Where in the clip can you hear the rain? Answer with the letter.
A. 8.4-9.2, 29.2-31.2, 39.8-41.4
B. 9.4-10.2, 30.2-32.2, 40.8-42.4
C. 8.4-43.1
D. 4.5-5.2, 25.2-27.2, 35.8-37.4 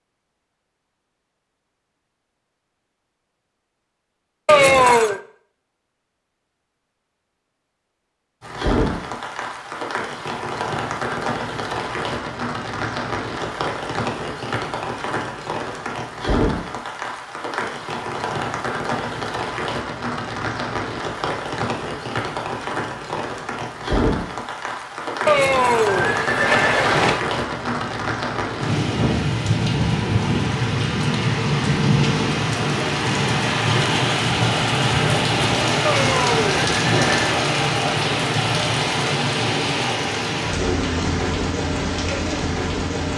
C.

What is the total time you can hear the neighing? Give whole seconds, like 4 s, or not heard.
4 s.